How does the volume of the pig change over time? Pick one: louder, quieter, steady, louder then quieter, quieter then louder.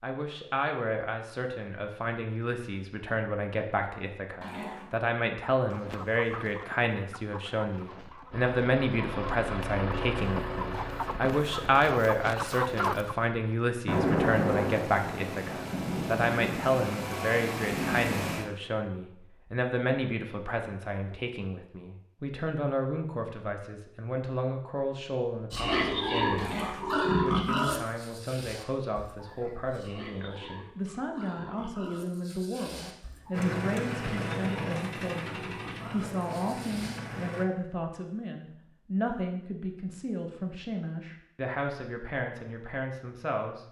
quieter.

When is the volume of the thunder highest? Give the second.
14 s.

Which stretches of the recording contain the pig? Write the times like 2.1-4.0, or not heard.
25.5-37.2.